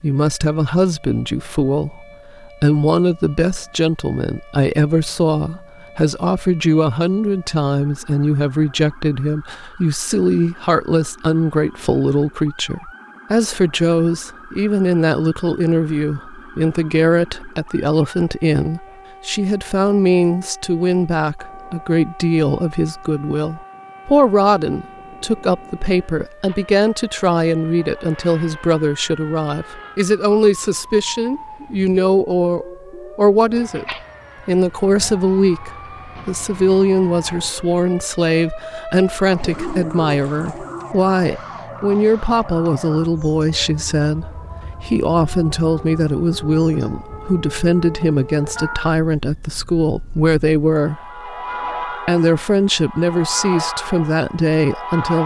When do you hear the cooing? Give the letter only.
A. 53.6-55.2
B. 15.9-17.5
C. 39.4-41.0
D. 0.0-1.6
C.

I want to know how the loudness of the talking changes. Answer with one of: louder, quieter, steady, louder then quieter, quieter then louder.
steady.